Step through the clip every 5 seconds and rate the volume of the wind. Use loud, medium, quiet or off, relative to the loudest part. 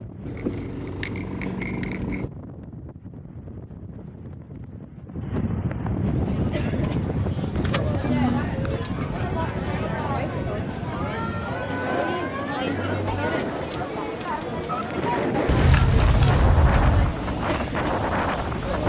quiet, loud, medium, loud.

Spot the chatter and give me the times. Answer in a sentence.
The chatter can be heard from 6.0 to 18.8 s.